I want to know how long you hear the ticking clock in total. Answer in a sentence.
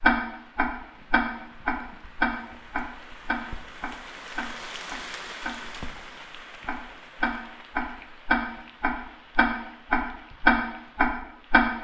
The ticking clock can be heard for 11 seconds in total.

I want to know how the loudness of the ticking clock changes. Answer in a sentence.
The volume of the ticking clock goes down, then up.